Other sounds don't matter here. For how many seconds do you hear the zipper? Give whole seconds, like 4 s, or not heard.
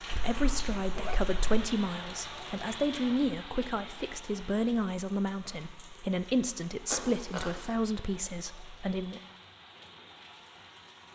2 s.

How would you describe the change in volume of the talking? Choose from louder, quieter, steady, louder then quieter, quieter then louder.
steady.